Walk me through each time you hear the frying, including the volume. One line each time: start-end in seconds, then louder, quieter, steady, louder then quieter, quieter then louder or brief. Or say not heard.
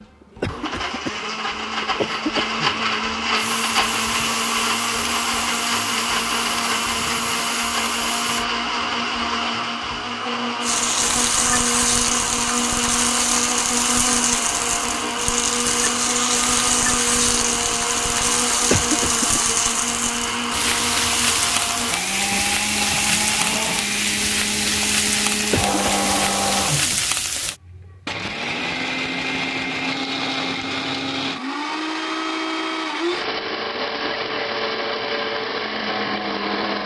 3.4-8.4 steady
10.6-27.6 steady.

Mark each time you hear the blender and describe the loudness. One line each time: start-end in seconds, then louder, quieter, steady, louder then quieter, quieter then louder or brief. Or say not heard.
0.0-36.8 steady.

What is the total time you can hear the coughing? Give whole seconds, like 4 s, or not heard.
4 s.